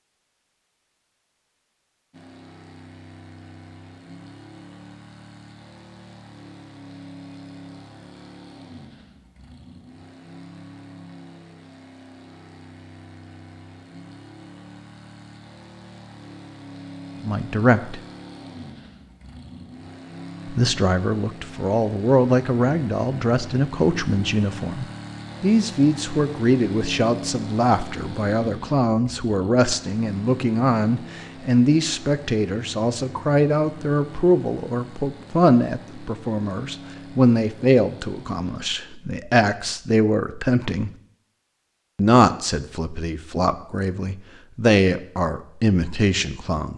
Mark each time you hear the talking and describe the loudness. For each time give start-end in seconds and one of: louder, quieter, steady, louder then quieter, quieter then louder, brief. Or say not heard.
17.2-18.0 brief
20.4-40.9 steady
42.0-46.7 louder.